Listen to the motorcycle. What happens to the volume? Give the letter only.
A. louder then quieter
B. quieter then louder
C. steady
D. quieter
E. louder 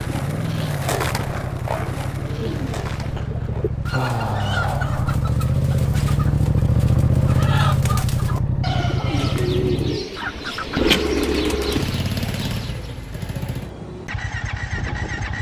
A.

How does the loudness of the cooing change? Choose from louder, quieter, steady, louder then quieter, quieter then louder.
louder.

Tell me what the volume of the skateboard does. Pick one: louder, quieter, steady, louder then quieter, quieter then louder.
quieter.